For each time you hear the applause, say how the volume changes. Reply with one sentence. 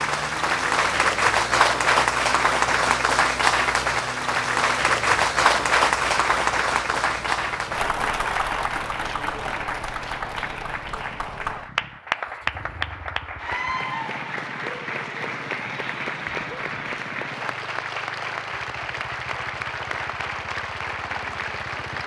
You can hear the applause from 0.0 to 22.0 s, getting quieter.